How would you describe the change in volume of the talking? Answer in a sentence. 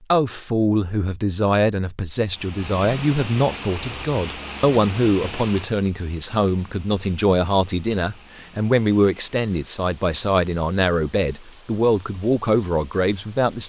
The volume of the talking stays about the same.